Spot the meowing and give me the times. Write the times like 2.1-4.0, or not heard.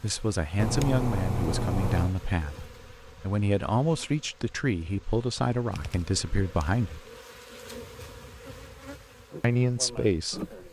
0.6-2.1, 5.7-6.8.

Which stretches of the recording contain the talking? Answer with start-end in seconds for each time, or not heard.
0.0-7.0, 9.4-10.4.